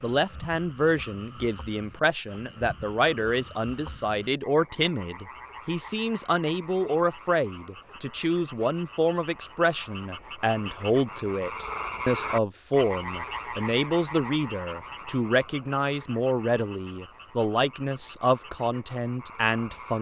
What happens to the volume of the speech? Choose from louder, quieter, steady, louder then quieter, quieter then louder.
steady.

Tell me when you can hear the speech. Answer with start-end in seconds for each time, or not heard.
0.0-19.9.